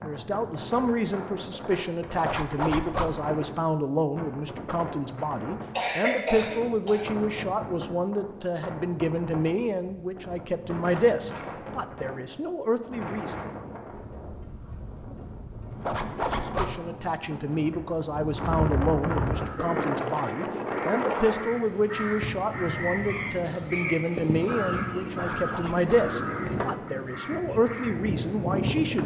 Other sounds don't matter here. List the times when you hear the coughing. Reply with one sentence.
The coughing can be heard from 5.8 to 7.0 s.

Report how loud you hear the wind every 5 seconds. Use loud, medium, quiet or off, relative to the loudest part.
medium, medium, medium, loud, loud, loud.